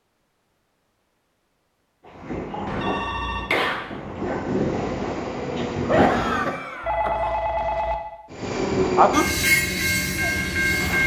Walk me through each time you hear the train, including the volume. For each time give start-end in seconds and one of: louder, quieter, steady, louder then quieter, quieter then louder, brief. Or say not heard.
2.0-6.6 quieter then louder
8.3-11.0 brief.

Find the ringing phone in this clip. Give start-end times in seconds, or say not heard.
2.6-3.5, 6.8-8.0.